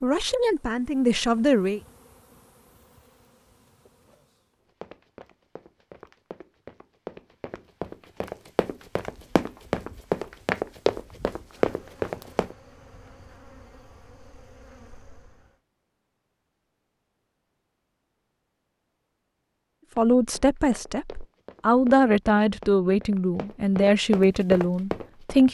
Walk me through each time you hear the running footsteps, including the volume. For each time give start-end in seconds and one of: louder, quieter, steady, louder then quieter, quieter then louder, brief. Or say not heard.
4.8-12.6 louder
19.9-25.4 louder.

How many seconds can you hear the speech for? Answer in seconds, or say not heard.
7 s.